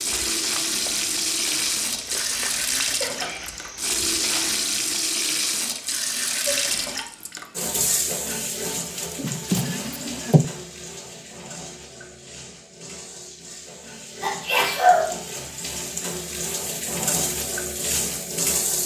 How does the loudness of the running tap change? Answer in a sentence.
The volume of the running tap goes down, then up.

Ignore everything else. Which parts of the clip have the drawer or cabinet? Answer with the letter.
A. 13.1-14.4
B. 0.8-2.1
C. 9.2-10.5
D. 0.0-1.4
C.